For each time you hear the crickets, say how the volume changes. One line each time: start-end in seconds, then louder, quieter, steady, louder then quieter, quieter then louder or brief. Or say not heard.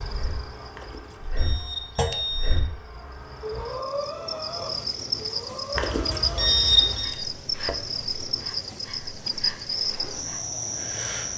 0.0-11.3 louder.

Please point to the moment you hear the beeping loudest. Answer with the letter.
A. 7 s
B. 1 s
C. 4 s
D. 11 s
A.